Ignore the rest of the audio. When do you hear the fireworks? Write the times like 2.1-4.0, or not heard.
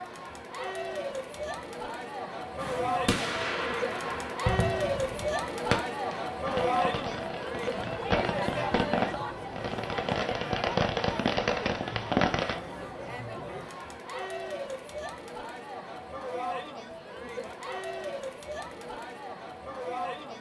2.5-12.6.